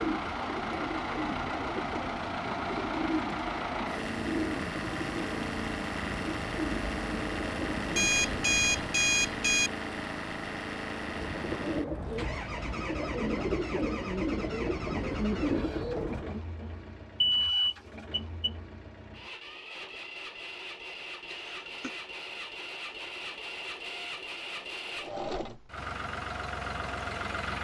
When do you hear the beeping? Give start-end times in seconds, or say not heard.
7.9-9.7, 17.2-18.5.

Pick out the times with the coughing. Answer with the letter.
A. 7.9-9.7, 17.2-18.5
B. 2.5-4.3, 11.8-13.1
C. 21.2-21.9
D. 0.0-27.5
C.